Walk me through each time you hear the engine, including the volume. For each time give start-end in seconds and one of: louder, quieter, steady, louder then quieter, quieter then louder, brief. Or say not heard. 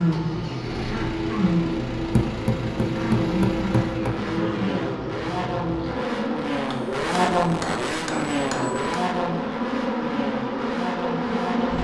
0.0-11.8 louder then quieter.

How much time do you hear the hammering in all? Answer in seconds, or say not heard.
4 s.